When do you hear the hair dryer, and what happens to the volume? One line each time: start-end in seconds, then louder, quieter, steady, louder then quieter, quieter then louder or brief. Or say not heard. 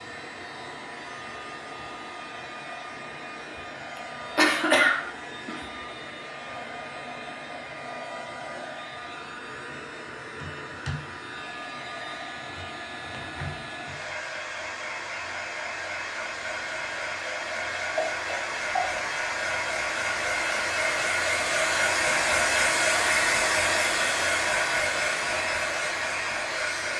0.0-26.9 louder.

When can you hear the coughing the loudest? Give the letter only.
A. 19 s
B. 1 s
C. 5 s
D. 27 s
C.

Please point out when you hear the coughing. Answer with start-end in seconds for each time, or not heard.
4.0-5.7, 17.9-18.9.